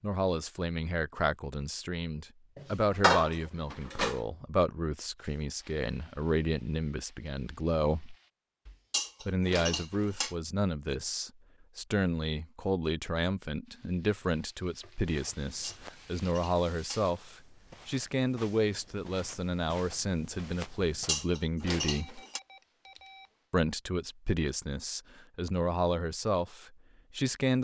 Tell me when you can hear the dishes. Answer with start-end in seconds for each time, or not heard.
2.5-4.2, 8.7-10.3, 15.6-17.1, 20.9-22.4.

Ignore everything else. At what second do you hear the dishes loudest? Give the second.
3 s.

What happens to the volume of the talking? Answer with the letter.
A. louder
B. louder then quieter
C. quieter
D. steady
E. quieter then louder
D.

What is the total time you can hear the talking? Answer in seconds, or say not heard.
25 s.